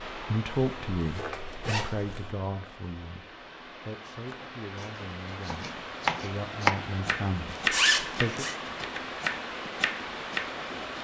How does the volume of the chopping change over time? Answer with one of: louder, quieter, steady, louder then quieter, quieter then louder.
louder then quieter.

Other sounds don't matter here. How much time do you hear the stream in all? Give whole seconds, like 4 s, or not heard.
11 s.